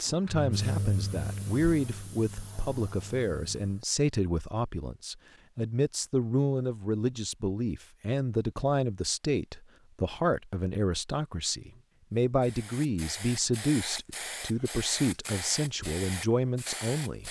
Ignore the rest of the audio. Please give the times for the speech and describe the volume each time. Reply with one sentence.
You can hear the speech from 0.0 to 17.2 s, at a steady volume.